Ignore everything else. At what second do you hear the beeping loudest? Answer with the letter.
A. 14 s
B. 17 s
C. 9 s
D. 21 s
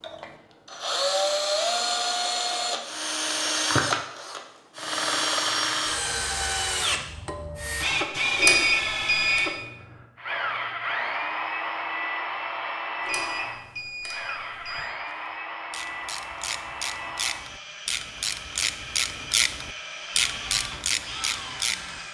C.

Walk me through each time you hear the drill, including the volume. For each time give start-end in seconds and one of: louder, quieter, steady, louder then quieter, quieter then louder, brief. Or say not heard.
0.0-22.0 quieter.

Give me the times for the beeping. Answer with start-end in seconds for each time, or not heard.
8.3-9.4, 13.1-14.9.